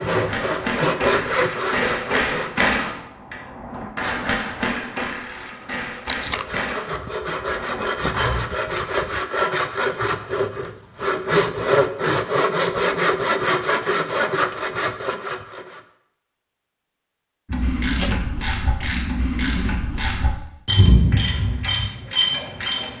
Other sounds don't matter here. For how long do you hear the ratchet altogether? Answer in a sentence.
You can hear the ratchet for 14 seconds altogether.